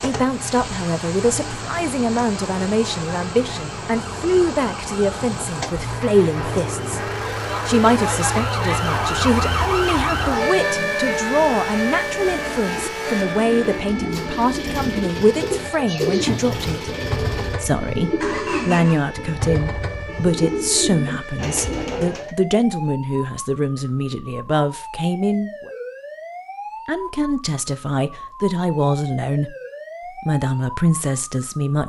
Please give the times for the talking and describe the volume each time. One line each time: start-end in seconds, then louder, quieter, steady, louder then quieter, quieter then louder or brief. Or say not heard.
0.0-7.0 steady
7.7-16.9 steady
17.6-25.7 steady
26.9-29.6 brief
30.2-31.8 brief.